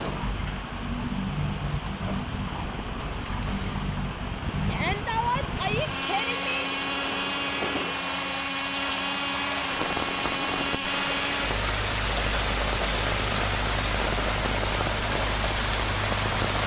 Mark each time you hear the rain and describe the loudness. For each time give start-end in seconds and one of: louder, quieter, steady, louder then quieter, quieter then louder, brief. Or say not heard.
0.0-16.6 louder.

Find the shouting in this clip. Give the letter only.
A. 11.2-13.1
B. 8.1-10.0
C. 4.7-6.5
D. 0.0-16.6
C.